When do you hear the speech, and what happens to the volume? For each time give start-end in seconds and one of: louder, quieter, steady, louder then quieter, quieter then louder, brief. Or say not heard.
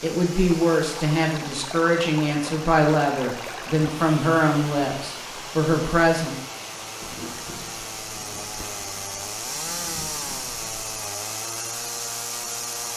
0.0-6.3 steady.